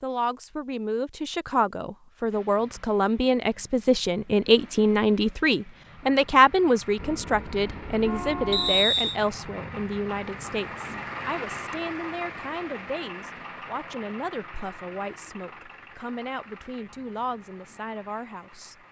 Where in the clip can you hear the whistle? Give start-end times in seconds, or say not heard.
8.5-9.2.